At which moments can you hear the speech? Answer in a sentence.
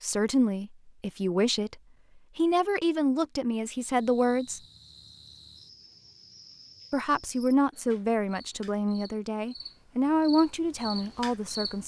You can hear the speech from 0.0 to 1.8 s, from 2.4 to 4.6 s and from 6.9 to 11.8 s.